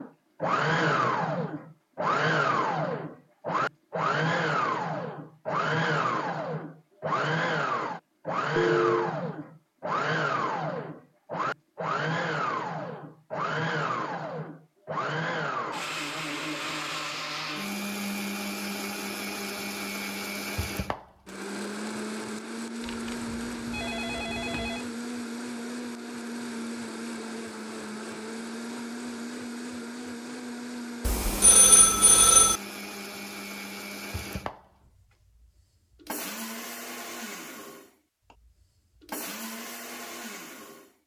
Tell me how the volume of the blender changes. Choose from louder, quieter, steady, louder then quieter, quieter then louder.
quieter.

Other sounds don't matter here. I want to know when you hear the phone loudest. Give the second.
32 s.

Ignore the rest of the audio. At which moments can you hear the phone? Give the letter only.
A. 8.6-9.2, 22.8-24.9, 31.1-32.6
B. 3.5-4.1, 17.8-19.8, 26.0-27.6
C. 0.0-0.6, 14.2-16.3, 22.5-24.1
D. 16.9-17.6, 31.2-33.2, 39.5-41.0
A.